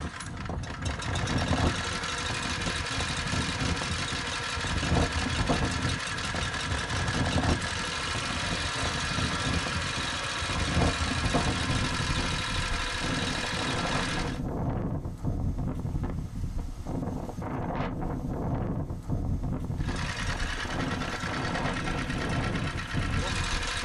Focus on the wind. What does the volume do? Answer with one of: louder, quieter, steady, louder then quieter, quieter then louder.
steady.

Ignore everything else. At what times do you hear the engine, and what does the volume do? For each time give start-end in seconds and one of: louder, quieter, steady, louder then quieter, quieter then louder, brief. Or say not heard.
0.0-14.4 steady
19.8-23.8 steady.